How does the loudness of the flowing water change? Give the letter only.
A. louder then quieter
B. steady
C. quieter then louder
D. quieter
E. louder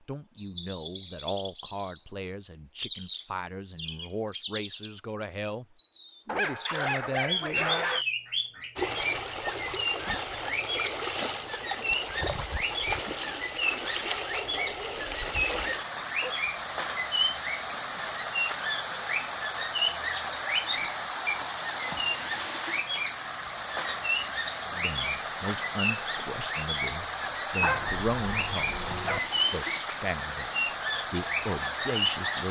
B.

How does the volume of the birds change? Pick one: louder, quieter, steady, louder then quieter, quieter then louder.
steady.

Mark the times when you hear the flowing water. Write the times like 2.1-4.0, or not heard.
8.8-32.4.